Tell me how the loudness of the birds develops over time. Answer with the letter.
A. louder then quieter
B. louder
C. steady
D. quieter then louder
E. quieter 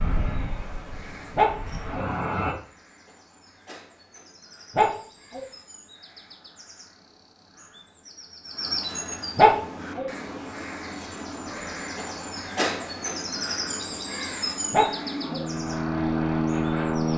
B.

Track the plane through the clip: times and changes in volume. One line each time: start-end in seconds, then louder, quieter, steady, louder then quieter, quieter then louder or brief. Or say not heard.
0.0-2.5 brief
9.5-17.1 louder.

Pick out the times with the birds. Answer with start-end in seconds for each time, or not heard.
0.0-17.1.